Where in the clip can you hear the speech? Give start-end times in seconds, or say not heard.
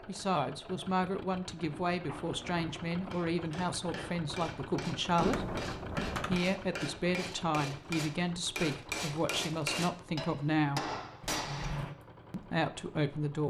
0.1-5.5, 6.2-10.9, 12.3-13.4.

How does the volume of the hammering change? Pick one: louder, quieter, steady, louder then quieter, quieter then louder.
louder.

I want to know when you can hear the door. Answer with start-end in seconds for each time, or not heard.
2.0-2.7, 5.2-6.4, 11.2-11.9.